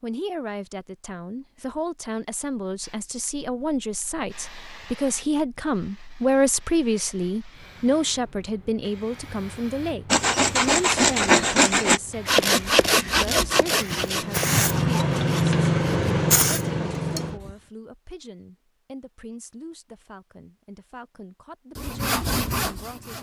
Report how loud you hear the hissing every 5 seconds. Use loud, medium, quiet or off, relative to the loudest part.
quiet, quiet, medium, loud, off.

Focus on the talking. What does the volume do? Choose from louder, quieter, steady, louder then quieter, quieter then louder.
louder then quieter.